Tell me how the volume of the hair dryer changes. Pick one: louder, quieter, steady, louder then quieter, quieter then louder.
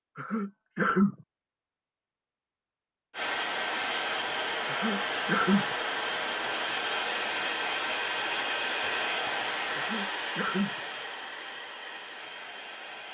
quieter.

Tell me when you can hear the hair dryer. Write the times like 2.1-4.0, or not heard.
3.1-13.0.